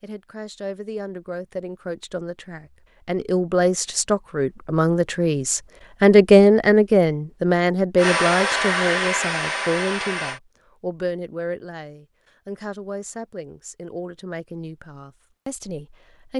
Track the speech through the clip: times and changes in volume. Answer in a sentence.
You can hear the speech from 0.0 to 16.3 s, getting louder then quieter.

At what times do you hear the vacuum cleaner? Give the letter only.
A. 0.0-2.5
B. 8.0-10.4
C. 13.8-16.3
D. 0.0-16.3
B.